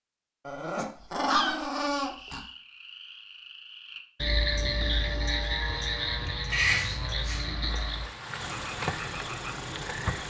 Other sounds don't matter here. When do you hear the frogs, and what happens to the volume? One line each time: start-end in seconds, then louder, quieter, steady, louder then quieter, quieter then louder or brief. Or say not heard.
1.9-10.2 louder then quieter.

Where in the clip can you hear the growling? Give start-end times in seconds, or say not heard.
0.5-2.4, 6.5-7.5.